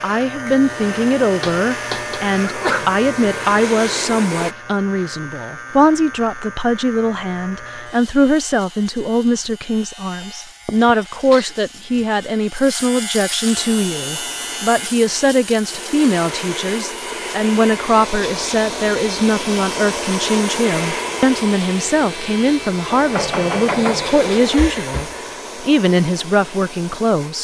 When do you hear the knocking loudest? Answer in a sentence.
The loudest moment of the knocking is at 24 seconds.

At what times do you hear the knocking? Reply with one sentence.
The knocking can be heard from 1.4 to 2.2 s and from 22.9 to 24.6 s.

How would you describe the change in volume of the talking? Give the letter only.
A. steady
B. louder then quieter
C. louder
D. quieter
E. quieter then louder
A.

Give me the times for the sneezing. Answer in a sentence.
You can hear the sneezing from 2.4 to 3.0 s, from 10.7 to 12.1 s and from 24.6 to 25.2 s.